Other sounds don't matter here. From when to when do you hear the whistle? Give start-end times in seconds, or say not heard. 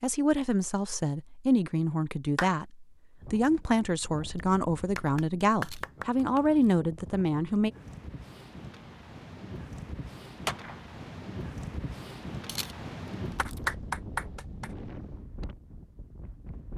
not heard.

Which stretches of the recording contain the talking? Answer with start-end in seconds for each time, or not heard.
0.0-7.7.